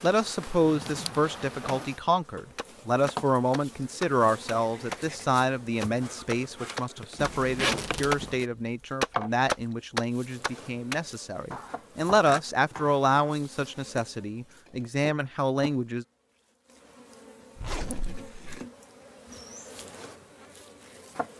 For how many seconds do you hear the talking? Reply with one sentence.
The talking can be heard for 16 seconds in total.